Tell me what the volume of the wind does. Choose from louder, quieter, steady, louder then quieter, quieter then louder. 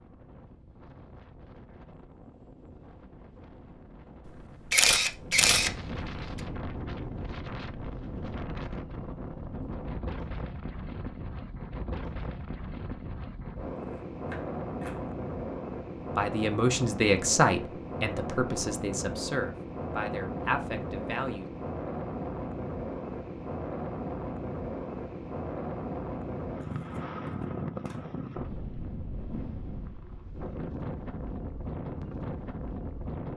louder.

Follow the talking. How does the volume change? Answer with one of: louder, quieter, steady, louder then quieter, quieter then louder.
quieter.